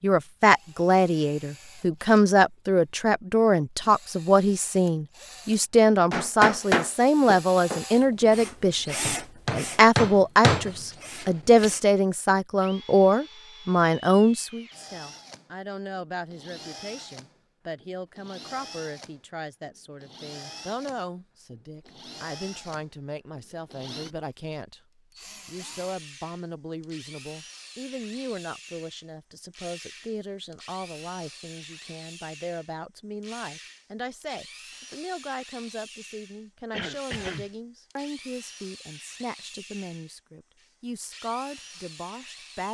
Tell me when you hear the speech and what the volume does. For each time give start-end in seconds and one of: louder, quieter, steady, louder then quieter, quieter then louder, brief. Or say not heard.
0.0-42.6 quieter.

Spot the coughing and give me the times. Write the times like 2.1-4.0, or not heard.
36.7-37.5.